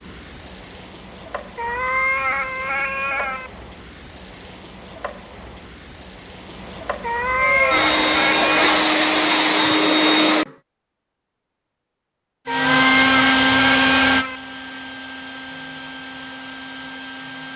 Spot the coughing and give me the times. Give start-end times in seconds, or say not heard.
not heard.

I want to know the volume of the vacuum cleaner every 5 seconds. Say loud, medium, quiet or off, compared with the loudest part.
off, loud, loud, quiet.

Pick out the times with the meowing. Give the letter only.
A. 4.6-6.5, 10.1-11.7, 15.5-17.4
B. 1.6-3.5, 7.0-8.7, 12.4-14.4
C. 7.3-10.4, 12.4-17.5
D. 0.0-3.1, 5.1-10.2
B.